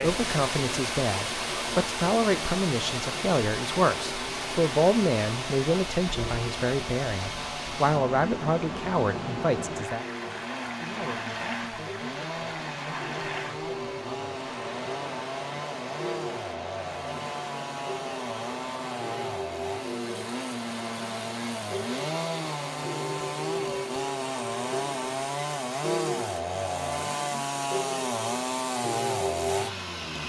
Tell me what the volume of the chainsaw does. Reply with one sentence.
The loudness of the chainsaw goes up.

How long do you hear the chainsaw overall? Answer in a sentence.
The chainsaw can be heard for 30 seconds in total.